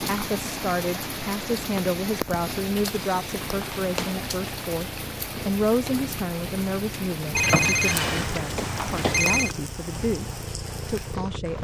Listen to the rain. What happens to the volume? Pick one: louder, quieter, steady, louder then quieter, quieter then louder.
quieter.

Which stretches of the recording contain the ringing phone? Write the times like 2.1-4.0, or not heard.
3.0-4.2, 7.3-9.6.